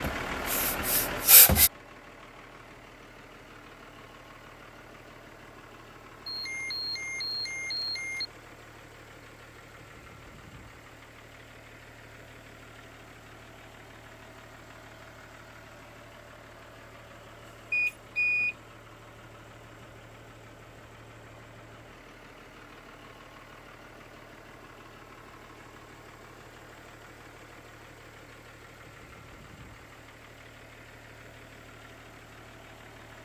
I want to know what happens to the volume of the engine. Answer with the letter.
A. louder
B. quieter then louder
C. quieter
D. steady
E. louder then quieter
C.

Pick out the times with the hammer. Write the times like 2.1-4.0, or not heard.
not heard.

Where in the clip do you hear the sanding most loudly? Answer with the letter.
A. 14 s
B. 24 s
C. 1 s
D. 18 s
C.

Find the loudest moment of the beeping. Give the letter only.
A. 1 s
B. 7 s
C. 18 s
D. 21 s
C.